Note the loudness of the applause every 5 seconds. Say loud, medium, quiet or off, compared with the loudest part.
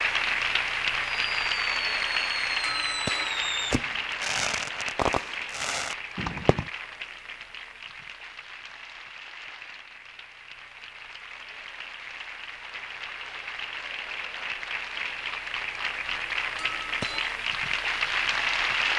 loud, medium, medium, loud.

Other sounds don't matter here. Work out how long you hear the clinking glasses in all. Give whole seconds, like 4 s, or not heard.
2 s.